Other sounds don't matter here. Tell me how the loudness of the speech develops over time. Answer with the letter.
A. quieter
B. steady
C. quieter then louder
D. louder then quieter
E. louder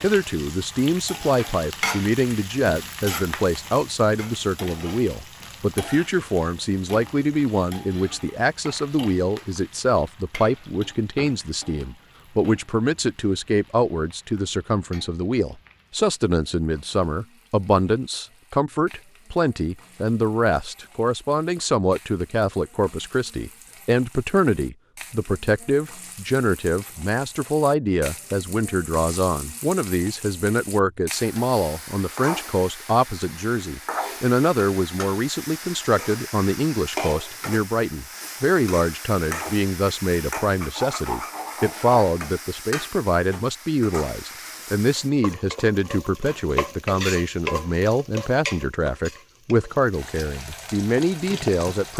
B.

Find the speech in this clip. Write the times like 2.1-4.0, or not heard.
0.0-51.9.